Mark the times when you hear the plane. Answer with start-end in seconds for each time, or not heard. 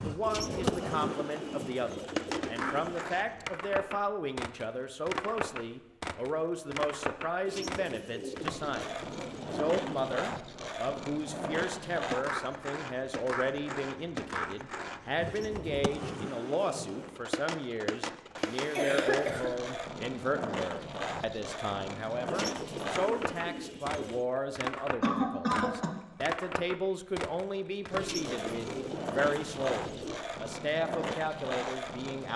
not heard.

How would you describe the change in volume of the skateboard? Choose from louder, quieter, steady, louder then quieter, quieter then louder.
steady.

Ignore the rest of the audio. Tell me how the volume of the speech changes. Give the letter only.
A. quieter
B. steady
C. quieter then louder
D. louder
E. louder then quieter
B.